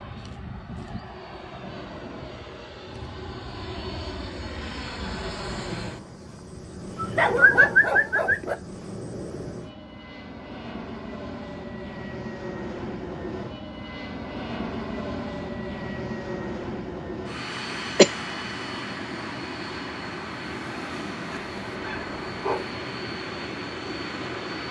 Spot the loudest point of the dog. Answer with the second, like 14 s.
8 s.